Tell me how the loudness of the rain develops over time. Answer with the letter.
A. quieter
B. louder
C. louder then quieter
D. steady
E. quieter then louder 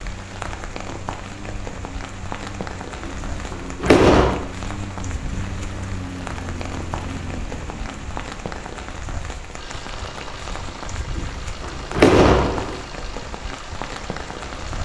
D.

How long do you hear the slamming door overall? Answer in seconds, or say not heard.
3 s.